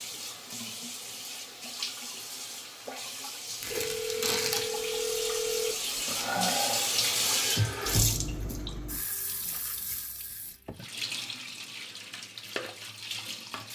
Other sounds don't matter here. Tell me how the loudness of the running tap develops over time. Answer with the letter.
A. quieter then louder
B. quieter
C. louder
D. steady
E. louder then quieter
E.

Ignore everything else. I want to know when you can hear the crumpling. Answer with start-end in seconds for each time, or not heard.
3.6-4.7.